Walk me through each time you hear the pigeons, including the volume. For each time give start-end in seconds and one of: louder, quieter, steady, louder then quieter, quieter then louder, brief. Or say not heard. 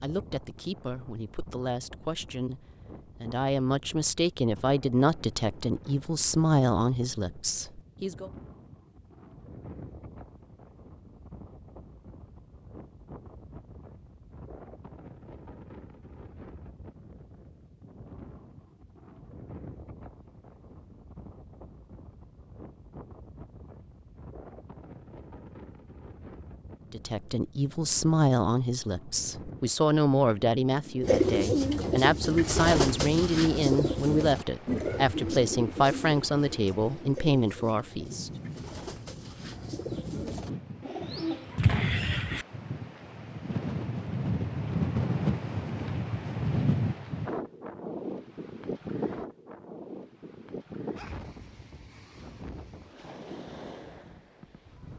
31.0-42.5 quieter then louder.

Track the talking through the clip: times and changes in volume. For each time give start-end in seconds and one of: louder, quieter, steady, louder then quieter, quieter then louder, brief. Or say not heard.
0.0-8.3 louder
26.9-38.6 steady.